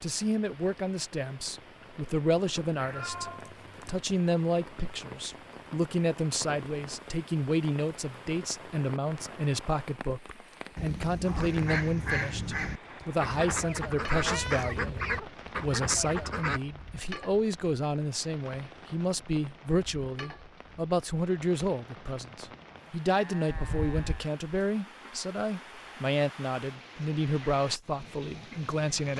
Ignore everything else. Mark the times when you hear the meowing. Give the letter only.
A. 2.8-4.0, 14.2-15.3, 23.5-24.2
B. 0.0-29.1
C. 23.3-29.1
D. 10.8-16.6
A.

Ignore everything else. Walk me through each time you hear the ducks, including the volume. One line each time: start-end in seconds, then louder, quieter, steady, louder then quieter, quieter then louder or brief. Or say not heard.
10.8-16.6 steady.